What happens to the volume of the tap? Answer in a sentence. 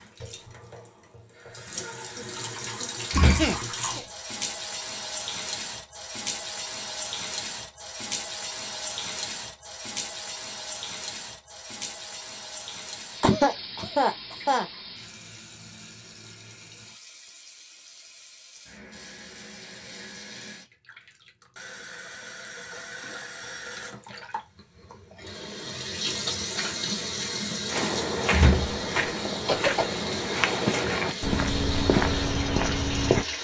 The volume of the tap goes down, then up.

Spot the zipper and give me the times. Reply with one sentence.
You can't hear the zipper here.